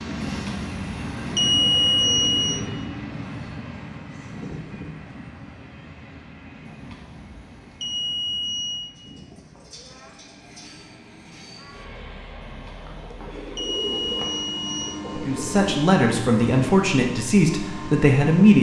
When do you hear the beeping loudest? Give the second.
2 s.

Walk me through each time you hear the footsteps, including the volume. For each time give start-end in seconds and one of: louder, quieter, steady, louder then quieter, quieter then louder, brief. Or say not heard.
not heard.